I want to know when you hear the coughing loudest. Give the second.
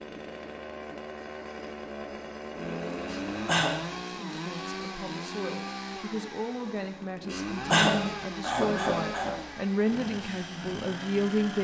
8 s.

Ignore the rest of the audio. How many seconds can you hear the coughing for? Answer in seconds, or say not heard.
3 s.